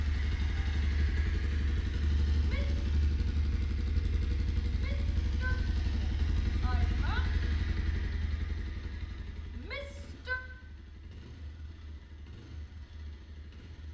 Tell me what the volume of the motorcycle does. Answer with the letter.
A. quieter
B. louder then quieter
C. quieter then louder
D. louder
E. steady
A.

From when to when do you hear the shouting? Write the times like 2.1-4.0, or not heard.
2.3-3.0, 4.7-7.3, 9.5-10.4.